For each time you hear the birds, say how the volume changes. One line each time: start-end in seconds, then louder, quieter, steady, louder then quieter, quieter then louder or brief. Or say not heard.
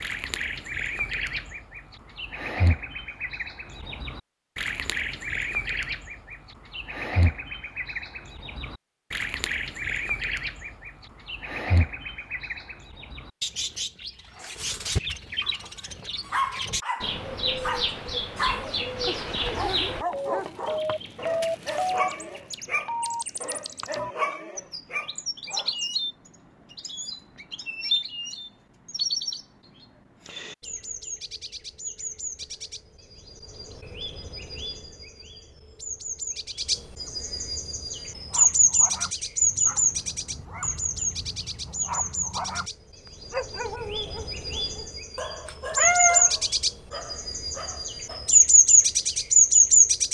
0.0-50.0 louder.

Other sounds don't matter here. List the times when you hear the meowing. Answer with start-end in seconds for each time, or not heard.
45.5-46.3.